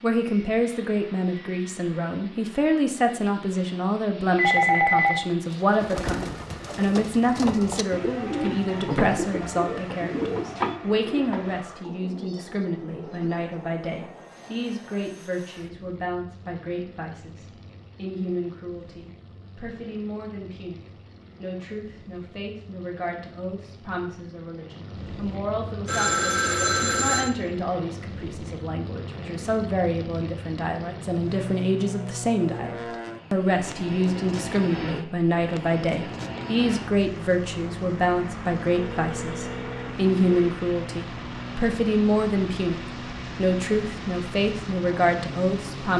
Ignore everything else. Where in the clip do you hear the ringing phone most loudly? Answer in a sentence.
The volume of the ringing phone peaks at 5 seconds.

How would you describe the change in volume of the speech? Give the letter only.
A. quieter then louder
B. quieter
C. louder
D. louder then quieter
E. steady
A.